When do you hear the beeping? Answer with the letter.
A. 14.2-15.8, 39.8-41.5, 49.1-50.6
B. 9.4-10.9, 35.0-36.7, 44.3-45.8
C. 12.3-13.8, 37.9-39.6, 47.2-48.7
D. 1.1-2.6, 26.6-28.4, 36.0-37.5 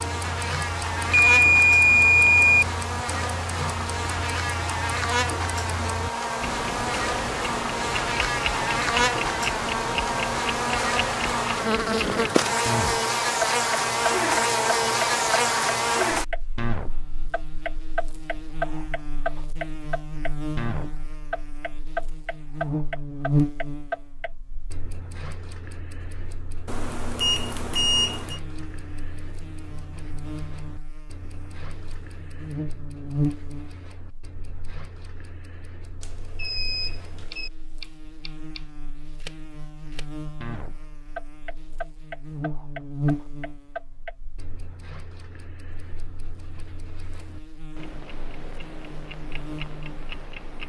D.